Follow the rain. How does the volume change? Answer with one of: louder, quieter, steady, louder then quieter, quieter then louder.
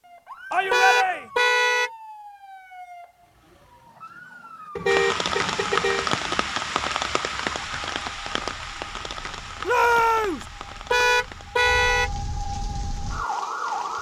quieter.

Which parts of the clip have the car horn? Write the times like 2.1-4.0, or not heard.
0.7-1.9, 4.8-6.1, 10.9-12.1.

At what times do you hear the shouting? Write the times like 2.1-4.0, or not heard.
0.5-1.2, 9.7-10.4.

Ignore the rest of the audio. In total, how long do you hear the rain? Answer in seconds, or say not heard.
9 s.